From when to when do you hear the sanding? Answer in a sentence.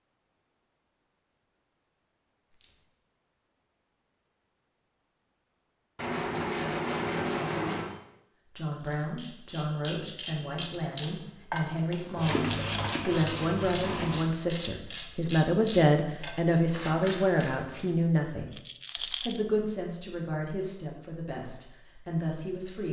You can hear the sanding from 6.0 to 7.9 s and from 12.2 to 14.2 s.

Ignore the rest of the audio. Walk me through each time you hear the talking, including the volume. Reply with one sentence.
The talking can be heard from 8.6 to 22.8 s, getting louder then quieter.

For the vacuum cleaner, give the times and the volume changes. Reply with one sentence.
You can't hear the vacuum cleaner here.